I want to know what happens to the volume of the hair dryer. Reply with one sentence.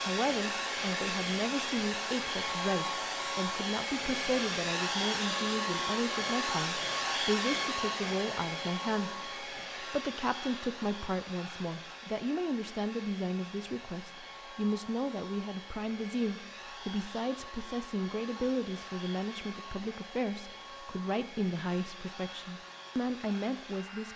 The volume of the hair dryer goes down.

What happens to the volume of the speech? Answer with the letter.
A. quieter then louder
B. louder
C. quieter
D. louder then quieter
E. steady
E.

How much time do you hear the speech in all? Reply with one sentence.
You can hear the speech for 24 seconds altogether.